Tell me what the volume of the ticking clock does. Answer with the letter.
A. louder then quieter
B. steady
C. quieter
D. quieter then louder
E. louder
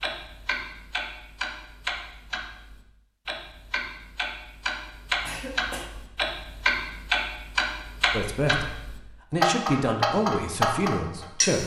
E.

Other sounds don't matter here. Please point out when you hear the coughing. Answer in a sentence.
The coughing can be heard from 5.2 to 5.9 s.